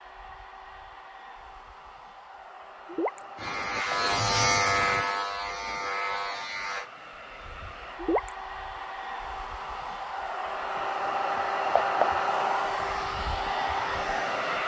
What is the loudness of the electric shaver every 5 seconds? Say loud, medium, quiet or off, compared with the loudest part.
loud, medium, off.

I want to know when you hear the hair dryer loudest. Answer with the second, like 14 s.
12 s.